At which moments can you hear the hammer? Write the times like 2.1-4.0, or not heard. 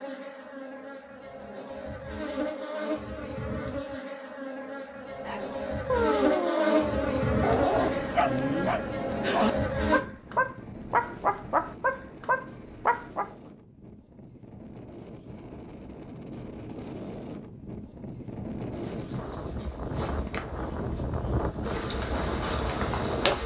not heard.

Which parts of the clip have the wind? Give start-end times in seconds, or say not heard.
7.7-23.4.